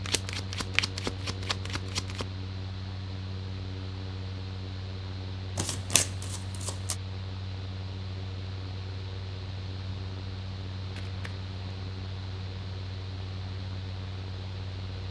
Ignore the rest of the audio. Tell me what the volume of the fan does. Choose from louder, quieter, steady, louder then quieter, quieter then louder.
steady.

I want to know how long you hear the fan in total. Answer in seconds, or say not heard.
15 s.